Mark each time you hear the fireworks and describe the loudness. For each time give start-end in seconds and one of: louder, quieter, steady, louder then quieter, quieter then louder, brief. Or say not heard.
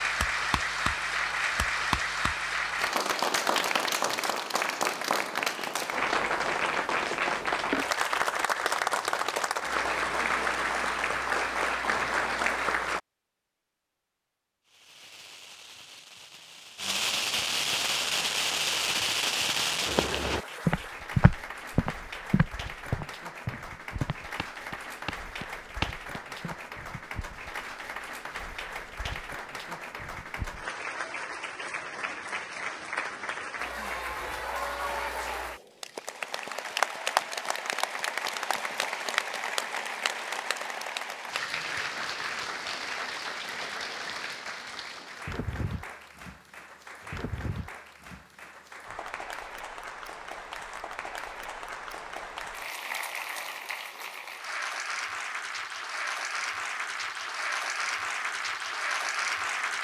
14.7-20.4 louder.